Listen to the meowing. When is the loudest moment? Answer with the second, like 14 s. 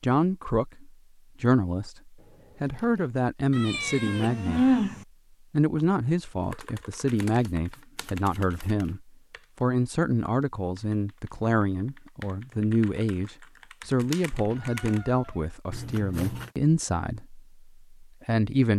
5 s.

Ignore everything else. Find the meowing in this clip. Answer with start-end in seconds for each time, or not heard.
3.5-5.0, 13.8-15.5.